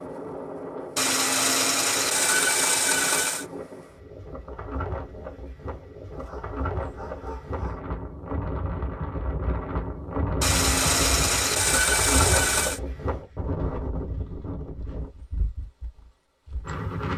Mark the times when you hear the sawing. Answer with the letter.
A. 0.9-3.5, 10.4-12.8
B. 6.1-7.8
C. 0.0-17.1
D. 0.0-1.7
A.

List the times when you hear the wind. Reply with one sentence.
You can hear the wind from 0.0 to 17.1 s.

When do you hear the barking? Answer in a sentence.
The barking can be heard from 6.1 to 7.8 s.